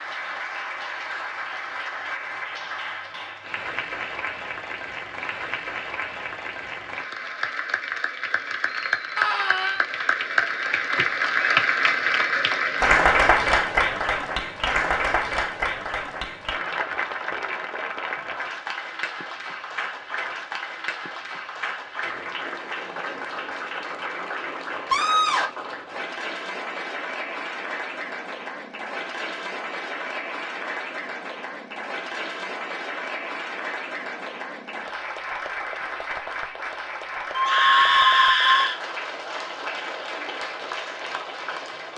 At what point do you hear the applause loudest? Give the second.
13 s.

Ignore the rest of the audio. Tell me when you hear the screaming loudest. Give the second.
38 s.